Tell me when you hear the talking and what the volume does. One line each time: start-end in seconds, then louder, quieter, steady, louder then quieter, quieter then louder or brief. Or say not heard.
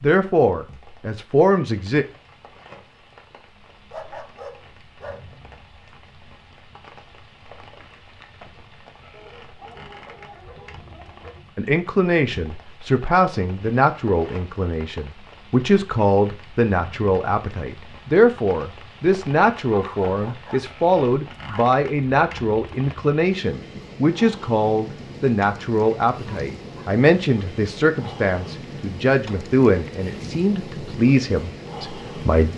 0.0-2.0 brief
11.6-32.5 steady.